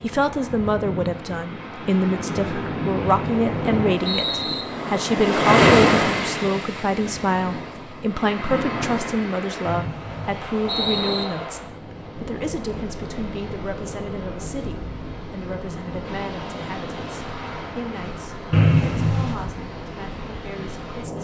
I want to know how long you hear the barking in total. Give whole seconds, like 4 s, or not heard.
not heard.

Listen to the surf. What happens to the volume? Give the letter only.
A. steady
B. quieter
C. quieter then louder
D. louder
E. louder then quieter
E.